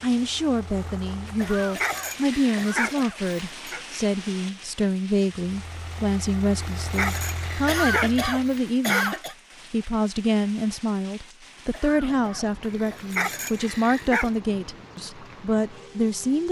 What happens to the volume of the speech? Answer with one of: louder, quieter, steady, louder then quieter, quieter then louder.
steady.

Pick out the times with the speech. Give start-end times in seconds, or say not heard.
0.0-16.4.